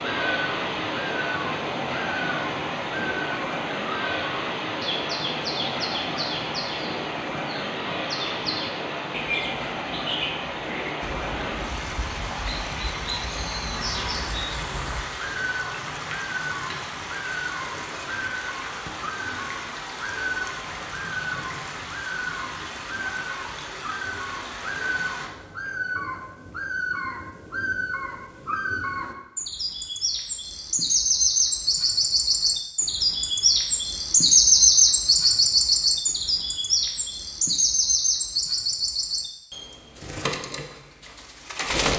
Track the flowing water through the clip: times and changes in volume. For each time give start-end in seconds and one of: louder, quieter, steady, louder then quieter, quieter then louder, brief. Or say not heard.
0.0-25.3 quieter.